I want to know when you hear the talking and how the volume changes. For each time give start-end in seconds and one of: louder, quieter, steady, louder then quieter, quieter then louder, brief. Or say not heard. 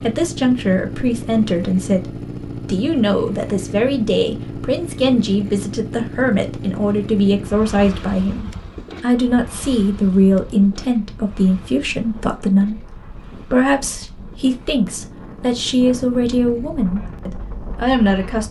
0.0-18.4 steady.